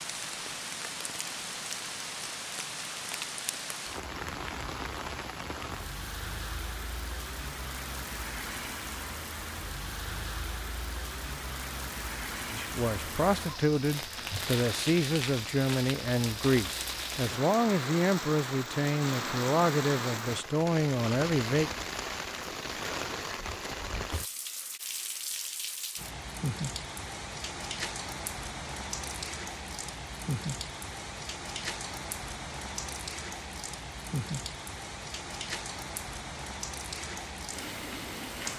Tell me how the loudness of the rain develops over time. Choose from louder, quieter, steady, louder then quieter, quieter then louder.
steady.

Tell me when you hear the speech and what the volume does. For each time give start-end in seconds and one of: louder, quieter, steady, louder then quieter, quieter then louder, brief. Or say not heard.
12.4-21.7 steady.